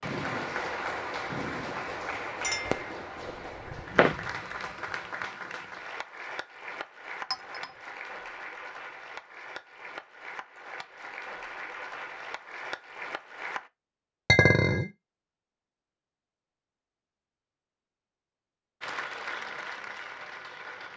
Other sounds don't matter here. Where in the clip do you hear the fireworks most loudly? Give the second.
4 s.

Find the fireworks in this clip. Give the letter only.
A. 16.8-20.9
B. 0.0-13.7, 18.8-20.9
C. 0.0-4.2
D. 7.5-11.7
C.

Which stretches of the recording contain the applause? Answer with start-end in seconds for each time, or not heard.
0.0-13.7, 18.8-20.9.